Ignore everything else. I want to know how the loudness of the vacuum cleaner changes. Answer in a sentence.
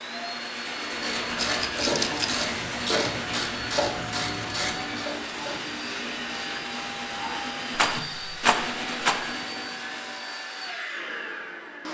The volume of the vacuum cleaner stays about the same.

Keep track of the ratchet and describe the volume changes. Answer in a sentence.
The loudness of the ratchet goes down.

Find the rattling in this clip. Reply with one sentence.
The rattling can be heard from 1.4 to 2.5 s and from 7.8 to 9.2 s.